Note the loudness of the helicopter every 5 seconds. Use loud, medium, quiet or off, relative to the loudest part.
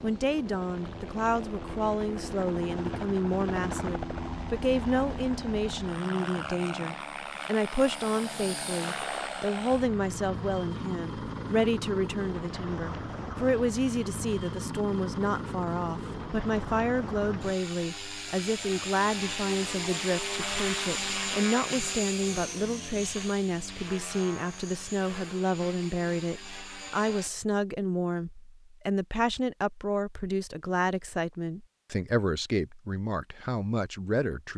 loud, loud, loud, loud, loud, medium, off.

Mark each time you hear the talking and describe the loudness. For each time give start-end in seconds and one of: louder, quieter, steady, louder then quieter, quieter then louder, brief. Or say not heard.
0.0-34.5 steady.